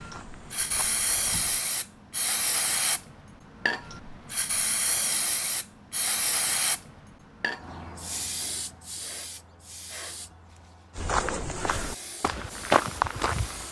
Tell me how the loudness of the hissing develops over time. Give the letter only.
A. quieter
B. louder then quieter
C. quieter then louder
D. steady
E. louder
A.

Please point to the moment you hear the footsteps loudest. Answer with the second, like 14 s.
13 s.